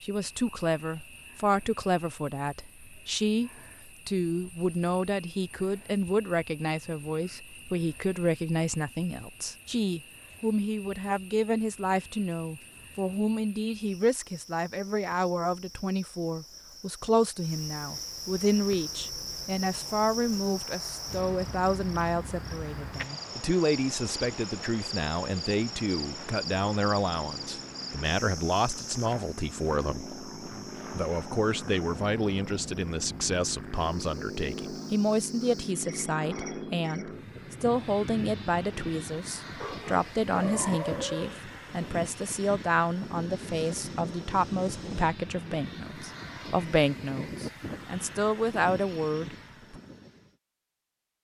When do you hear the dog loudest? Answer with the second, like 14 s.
41 s.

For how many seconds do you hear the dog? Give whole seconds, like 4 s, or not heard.
2 s.